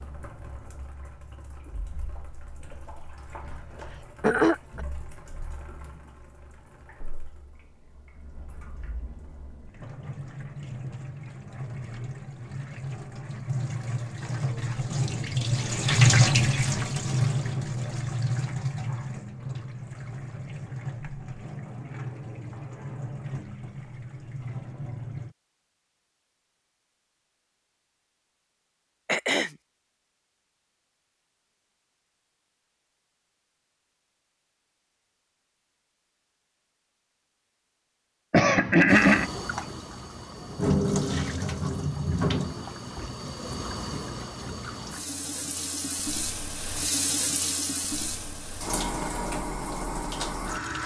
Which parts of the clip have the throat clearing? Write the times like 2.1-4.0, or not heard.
4.2-4.8, 29.1-29.5, 38.3-39.3.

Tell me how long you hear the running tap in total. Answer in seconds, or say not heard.
37 s.